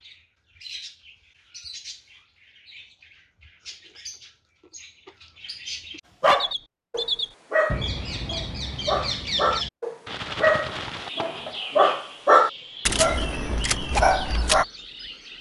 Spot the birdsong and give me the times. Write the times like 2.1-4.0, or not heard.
0.0-15.3.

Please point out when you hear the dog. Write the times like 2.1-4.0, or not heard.
6.2-14.7.